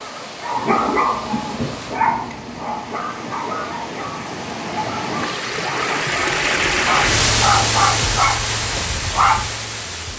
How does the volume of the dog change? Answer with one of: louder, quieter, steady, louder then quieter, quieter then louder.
quieter then louder.